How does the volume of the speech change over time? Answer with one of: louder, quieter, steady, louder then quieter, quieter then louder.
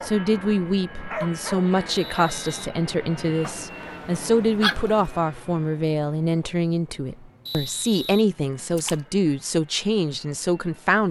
steady.